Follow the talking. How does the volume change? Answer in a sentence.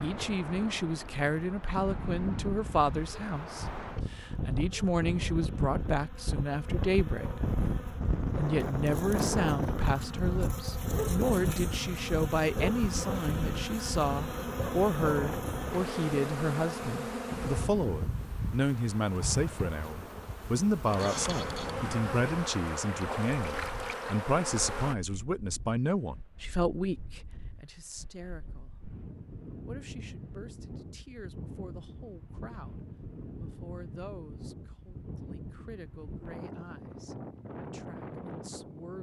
The loudness of the talking goes down.